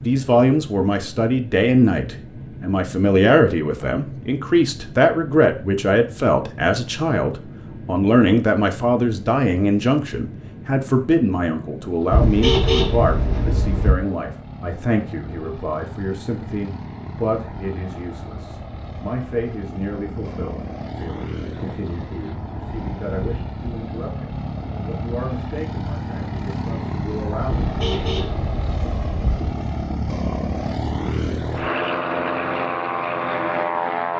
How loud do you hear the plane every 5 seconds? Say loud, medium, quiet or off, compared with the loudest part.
quiet, quiet, quiet, quiet, medium, medium, loud.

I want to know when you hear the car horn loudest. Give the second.
13 s.